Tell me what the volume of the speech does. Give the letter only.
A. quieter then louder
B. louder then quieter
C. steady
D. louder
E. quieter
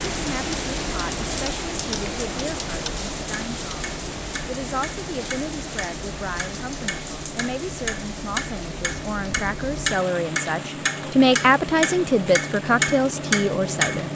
D.